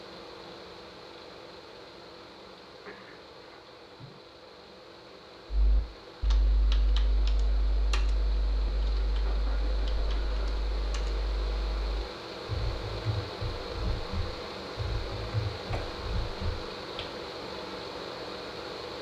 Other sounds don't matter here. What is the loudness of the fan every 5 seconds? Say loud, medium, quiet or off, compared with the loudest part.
medium, medium, loud, loud.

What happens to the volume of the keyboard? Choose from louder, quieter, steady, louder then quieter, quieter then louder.
quieter then louder.